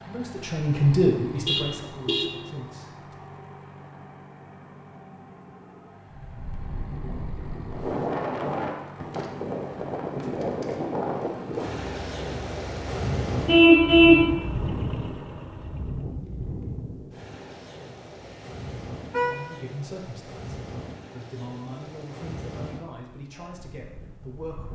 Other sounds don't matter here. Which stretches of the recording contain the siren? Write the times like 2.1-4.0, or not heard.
not heard.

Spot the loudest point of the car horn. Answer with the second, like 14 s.
14 s.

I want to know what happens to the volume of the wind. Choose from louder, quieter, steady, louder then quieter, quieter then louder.
quieter.